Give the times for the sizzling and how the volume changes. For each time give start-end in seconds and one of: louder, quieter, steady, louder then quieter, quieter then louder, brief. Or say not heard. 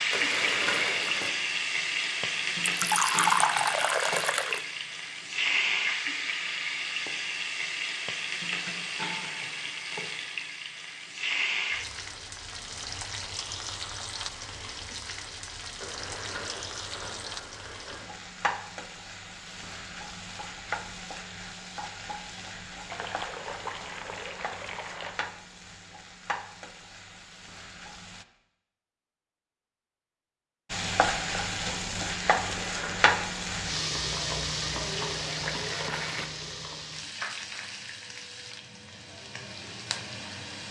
0.0-28.2 quieter
30.7-40.6 quieter.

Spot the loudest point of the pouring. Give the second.
3 s.